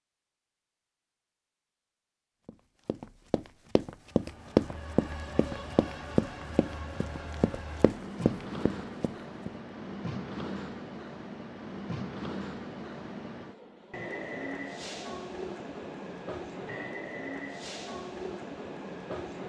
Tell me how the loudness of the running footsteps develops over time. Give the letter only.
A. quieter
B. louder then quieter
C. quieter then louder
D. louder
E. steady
B.